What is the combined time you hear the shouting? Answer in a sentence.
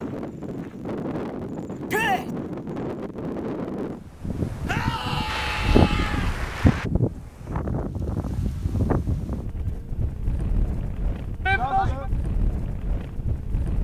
The shouting can be heard for 3 seconds in total.